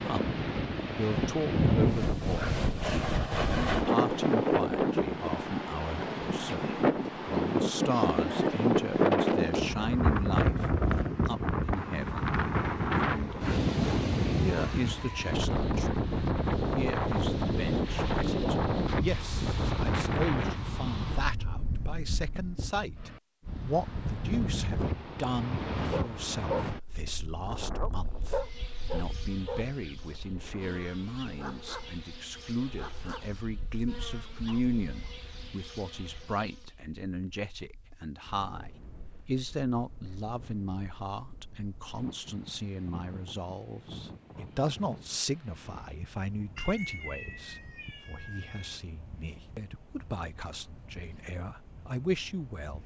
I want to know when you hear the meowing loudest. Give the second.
47 s.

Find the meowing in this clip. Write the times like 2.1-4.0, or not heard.
46.5-48.8.